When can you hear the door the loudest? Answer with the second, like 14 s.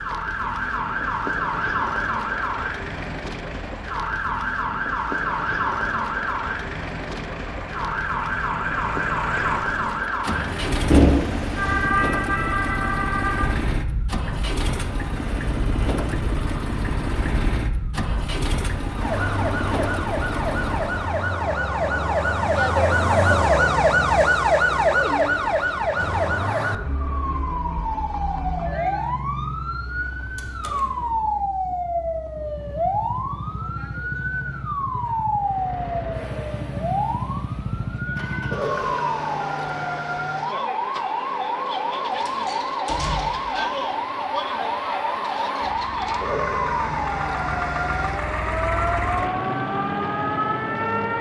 11 s.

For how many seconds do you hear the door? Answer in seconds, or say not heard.
3 s.